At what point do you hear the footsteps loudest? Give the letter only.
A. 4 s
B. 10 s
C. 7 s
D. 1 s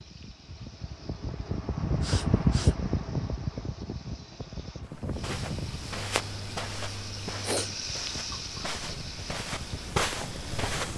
B.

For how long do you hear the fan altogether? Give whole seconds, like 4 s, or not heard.
11 s.